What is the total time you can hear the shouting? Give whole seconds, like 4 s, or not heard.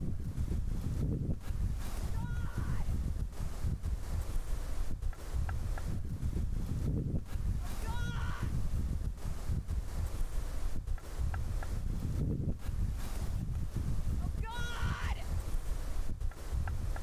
3 s.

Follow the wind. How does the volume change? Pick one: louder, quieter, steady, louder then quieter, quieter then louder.
steady.